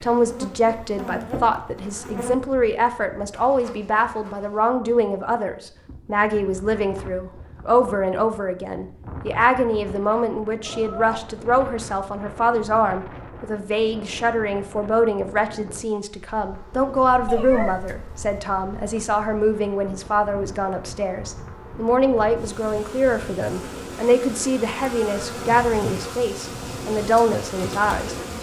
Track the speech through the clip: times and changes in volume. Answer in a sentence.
You can hear the speech from 0.0 to 28.1 s, at a steady volume.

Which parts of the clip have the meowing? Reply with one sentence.
You can hear the meowing from 10.6 to 11.1 s and from 17.2 to 18.4 s.